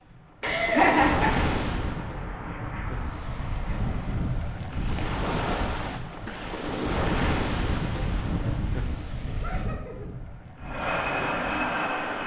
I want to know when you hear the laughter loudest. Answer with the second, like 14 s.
1 s.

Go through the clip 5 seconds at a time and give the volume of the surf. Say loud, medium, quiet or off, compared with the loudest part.
loud, loud, medium.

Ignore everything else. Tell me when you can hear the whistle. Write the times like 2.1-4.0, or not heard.
not heard.